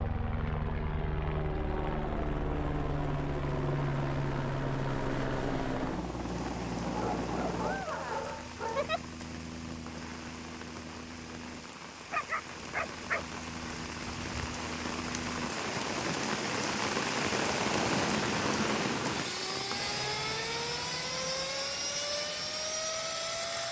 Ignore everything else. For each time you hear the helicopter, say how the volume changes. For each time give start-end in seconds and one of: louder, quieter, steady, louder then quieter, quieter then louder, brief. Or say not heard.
0.0-23.6 quieter then louder.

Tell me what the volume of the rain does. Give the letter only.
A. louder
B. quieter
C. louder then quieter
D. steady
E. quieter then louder
C.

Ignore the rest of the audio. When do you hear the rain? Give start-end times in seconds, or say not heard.
6.0-23.6.